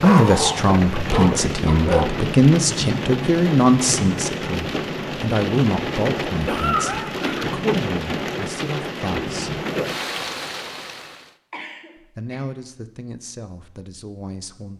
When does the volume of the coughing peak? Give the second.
7 s.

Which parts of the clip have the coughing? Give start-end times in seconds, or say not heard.
1.1-1.8, 6.5-7.5, 11.5-12.4.